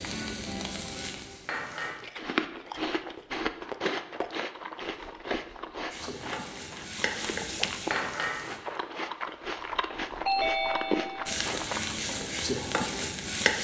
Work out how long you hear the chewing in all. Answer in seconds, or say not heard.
10 s.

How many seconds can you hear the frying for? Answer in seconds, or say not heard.
7 s.